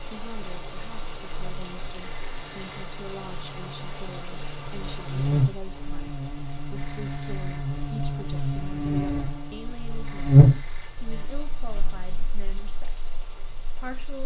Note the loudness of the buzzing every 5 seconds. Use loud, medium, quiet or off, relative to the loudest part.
quiet, medium, loud.